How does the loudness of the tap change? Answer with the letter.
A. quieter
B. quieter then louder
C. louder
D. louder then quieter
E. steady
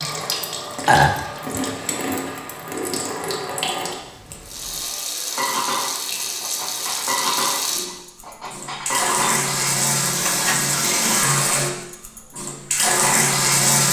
C.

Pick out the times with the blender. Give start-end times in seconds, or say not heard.
not heard.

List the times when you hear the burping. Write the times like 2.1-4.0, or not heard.
0.8-1.8.